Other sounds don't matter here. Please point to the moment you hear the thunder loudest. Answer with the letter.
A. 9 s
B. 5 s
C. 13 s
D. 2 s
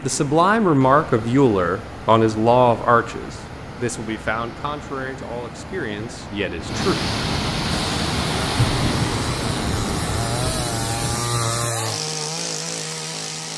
A.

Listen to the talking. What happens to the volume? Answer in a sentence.
The loudness of the talking goes down.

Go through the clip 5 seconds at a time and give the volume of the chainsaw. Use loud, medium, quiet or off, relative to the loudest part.
off, medium, loud.